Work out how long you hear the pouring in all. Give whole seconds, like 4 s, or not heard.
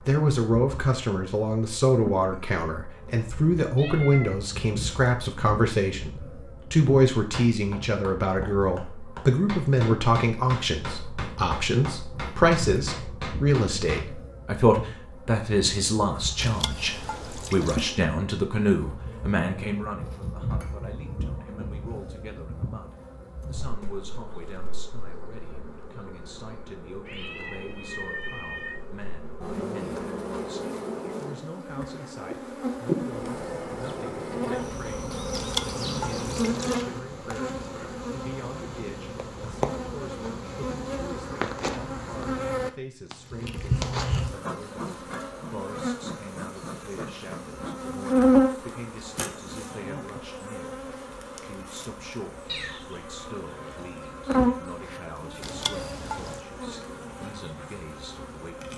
4 s.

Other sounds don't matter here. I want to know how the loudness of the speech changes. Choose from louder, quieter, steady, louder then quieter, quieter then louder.
quieter.